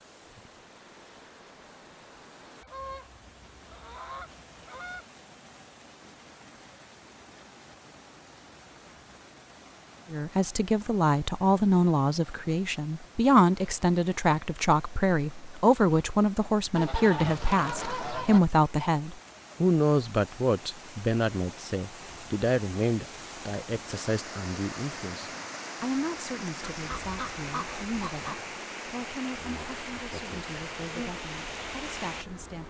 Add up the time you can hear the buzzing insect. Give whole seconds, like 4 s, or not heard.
3 s.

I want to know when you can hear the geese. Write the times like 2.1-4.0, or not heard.
2.6-5.0, 16.8-18.4, 26.7-28.6.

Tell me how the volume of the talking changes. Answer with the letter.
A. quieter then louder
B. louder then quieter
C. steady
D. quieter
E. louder
D.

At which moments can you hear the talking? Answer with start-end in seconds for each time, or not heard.
10.1-32.6.